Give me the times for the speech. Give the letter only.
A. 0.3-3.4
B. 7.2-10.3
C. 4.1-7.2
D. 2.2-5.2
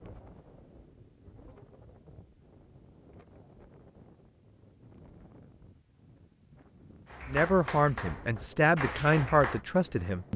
B.